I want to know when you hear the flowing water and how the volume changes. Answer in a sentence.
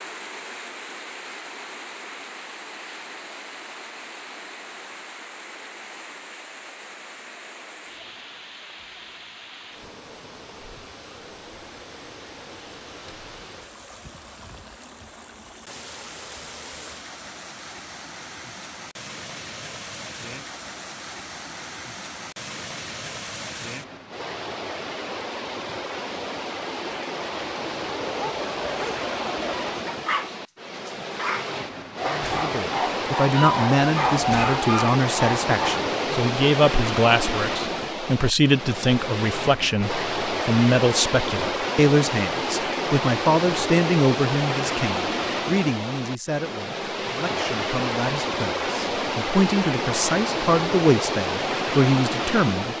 The flowing water can be heard from 0.0 to 52.7 s, getting louder.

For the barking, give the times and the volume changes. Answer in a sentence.
The barking can be heard from 28.1 to 35.9 s, getting louder.